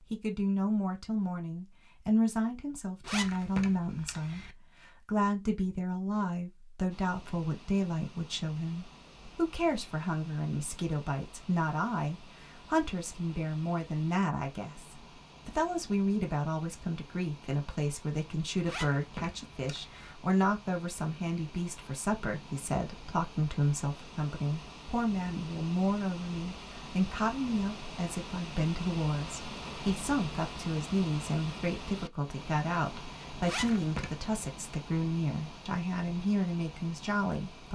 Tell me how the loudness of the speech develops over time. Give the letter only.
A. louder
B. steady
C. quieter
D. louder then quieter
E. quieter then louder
B.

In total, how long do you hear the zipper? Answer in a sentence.
You can hear the zipper for 4 seconds altogether.